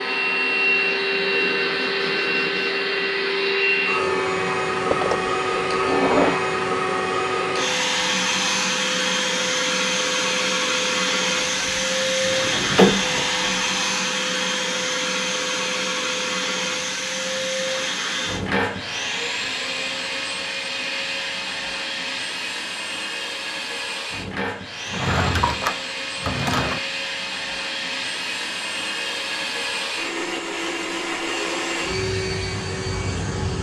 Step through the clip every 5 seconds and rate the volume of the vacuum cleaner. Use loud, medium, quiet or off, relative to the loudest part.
loud, loud, loud, loud, medium, medium, medium.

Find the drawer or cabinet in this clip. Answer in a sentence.
The drawer or cabinet can be heard from 4.9 to 6.4 s, from 11.3 to 13.5 s and from 24.9 to 26.8 s.